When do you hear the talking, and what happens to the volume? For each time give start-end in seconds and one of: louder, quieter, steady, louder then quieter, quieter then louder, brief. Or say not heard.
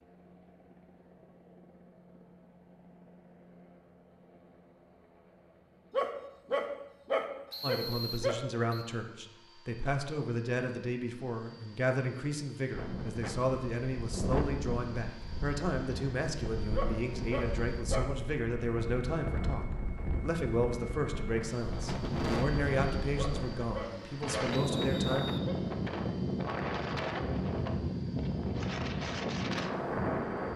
7.6-25.2 steady.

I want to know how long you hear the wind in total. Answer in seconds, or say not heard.
18 s.